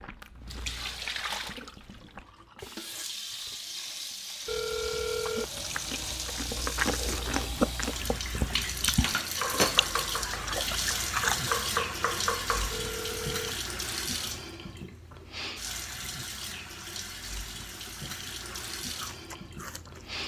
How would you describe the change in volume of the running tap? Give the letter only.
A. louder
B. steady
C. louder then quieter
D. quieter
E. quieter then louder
C.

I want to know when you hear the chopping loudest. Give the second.
12 s.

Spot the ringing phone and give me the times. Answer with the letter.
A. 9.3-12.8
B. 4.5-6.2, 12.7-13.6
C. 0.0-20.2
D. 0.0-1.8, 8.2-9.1
B.